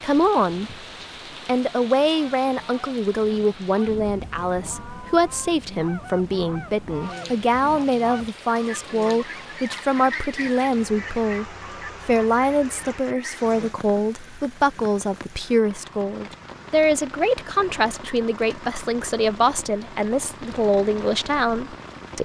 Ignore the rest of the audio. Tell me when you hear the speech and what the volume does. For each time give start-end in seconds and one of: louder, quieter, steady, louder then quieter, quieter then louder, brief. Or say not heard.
0.0-0.8 brief
1.4-22.1 steady.